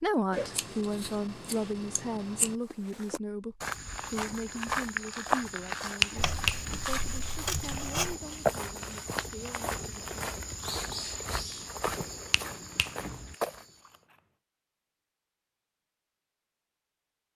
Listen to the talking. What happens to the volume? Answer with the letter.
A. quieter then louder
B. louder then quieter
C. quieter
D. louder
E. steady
C.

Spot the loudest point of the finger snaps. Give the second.
6 s.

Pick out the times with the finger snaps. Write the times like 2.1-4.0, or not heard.
6.0-6.8, 12.3-13.3.